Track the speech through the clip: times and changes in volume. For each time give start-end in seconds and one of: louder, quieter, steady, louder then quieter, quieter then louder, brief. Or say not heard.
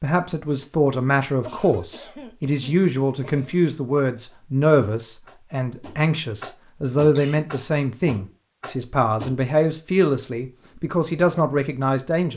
0.0-12.3 steady.